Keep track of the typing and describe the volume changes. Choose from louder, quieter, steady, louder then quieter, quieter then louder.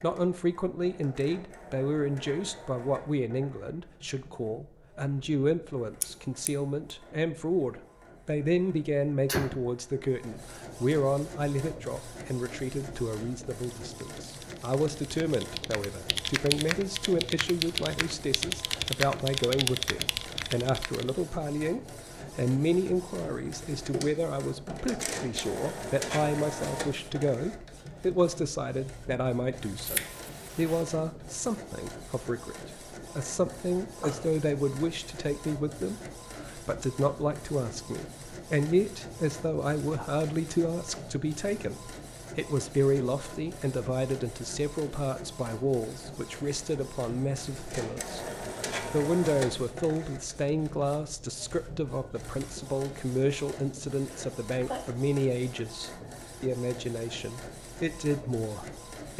louder.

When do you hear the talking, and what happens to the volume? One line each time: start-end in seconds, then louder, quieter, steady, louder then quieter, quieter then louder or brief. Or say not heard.
0.0-59.1 steady.